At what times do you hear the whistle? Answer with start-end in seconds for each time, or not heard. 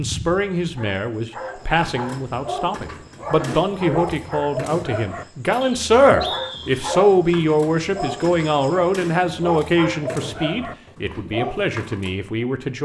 5.6-6.8.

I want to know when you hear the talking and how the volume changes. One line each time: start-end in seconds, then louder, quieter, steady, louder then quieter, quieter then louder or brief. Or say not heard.
0.0-12.8 louder then quieter.